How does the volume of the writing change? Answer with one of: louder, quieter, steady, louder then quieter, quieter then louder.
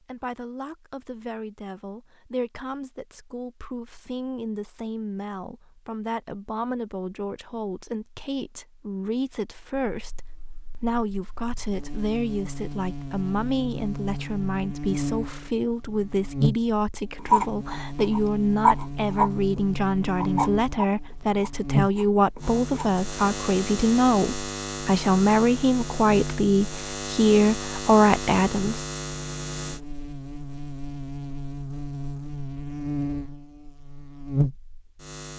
louder then quieter.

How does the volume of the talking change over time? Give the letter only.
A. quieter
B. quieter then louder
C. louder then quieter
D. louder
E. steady
D.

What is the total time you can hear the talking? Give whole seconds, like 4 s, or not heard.
29 s.